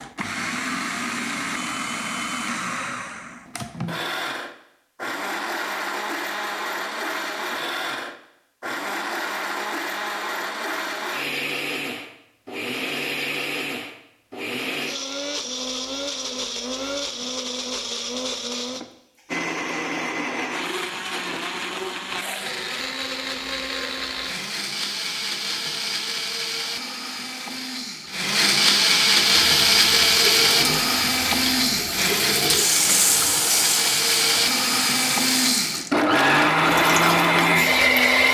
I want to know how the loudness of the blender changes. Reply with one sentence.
The loudness of the blender goes up.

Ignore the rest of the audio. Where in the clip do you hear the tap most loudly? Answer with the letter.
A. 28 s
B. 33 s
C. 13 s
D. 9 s
B.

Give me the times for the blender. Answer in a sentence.
You can hear the blender from 0.0 to 38.2 s.